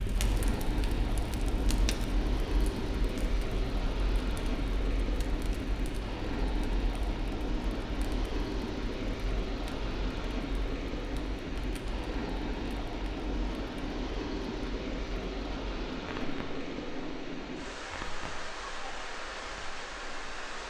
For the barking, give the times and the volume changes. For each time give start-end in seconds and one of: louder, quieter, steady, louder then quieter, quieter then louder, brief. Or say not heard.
not heard.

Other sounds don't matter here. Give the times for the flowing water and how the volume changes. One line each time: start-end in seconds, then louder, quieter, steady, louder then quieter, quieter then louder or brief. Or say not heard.
0.0-20.6 steady.